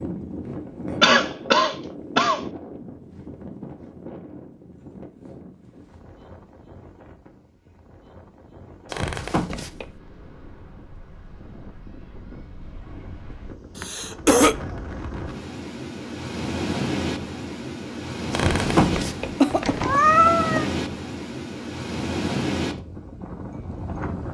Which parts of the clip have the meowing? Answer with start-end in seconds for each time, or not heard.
8.9-9.9, 18.3-20.6.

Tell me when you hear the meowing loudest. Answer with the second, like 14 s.
20 s.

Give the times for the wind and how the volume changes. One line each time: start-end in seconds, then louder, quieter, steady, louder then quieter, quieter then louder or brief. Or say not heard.
0.0-24.2 quieter then louder.